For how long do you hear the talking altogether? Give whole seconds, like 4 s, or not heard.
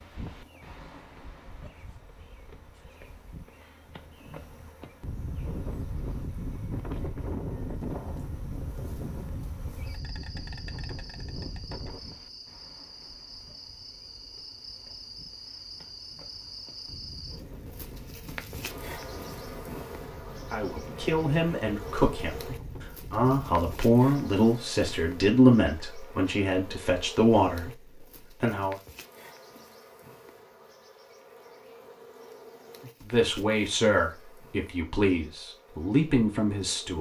12 s.